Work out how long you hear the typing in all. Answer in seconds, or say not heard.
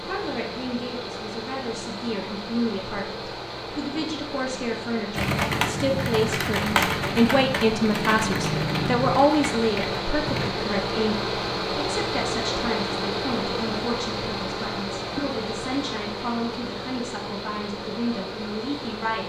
5 s.